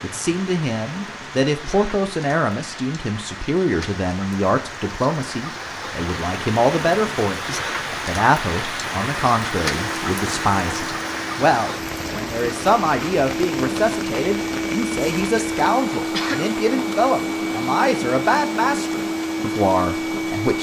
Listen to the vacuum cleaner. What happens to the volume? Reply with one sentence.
The volume of the vacuum cleaner goes up.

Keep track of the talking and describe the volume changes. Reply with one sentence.
The loudness of the talking stays about the same.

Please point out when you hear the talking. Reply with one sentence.
You can hear the talking from 0.0 to 20.5 s.